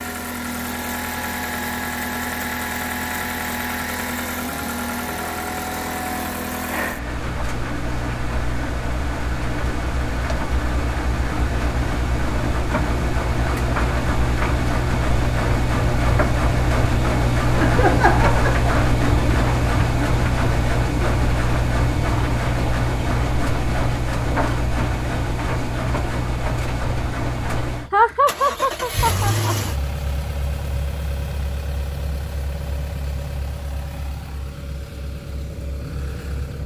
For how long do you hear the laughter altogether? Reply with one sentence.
The laughter can be heard for 3 seconds in total.